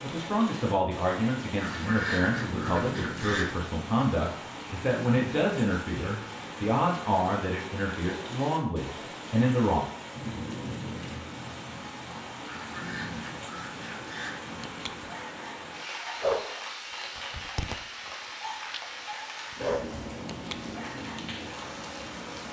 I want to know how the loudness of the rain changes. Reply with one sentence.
The volume of the rain stays about the same.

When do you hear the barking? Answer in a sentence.
The barking can be heard from 14.6 to 21.3 s.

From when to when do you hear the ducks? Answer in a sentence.
You can hear the ducks from 1.6 to 3.5 s and from 12.4 to 14.4 s.